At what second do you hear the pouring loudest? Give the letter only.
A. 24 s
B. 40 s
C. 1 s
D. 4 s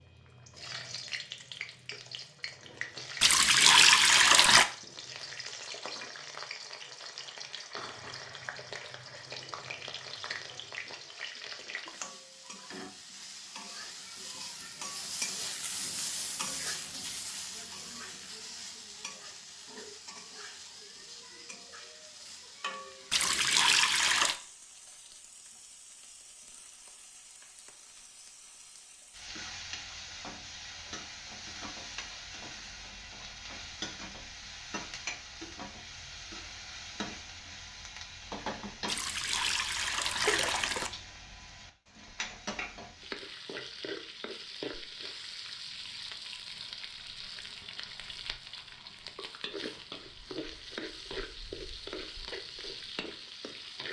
D.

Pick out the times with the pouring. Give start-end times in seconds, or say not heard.
3.2-4.7, 23.1-24.4, 38.9-40.9.